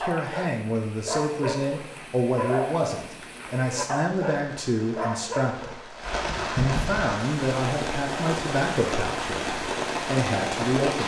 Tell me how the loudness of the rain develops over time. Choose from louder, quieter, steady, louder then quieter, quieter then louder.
louder.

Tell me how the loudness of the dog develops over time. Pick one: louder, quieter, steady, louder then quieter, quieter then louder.
steady.